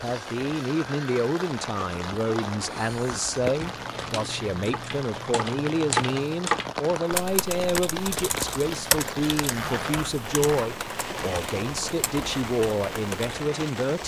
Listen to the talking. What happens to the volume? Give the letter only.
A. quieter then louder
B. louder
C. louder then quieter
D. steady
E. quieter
D.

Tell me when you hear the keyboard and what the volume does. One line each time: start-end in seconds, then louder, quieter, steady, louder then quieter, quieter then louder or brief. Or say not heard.
3.6-13.3 louder then quieter.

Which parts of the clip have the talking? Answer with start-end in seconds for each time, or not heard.
0.0-14.0.